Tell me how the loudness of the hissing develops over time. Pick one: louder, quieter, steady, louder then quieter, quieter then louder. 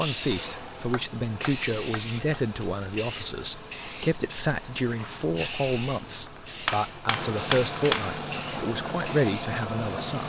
steady.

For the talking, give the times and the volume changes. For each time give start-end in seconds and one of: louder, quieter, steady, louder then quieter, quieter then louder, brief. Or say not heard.
0.0-10.2 steady.